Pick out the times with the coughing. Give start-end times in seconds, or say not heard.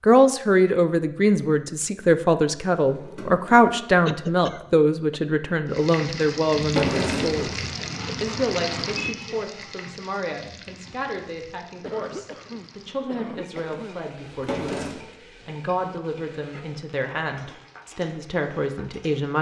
4.0-5.2, 11.8-14.1.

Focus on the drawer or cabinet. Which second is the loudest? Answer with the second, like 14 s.
7 s.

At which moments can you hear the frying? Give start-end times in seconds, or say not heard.
5.7-19.3.